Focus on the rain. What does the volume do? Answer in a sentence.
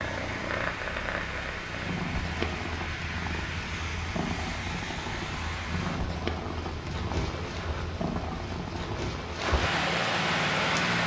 The volume of the rain goes up.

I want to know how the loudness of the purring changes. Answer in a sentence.
The volume of the purring stays about the same.